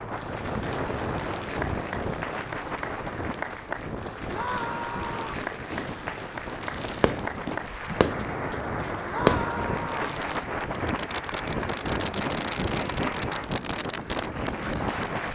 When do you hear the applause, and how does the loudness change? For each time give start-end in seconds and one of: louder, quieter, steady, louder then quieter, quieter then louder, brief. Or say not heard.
0.0-15.3 steady.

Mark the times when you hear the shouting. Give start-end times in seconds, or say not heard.
4.2-5.5, 9.1-10.1.